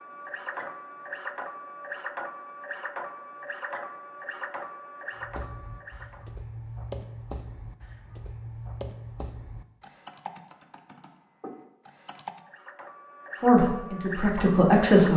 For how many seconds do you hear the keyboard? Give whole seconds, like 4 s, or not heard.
7 s.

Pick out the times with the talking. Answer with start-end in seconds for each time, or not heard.
13.4-15.1.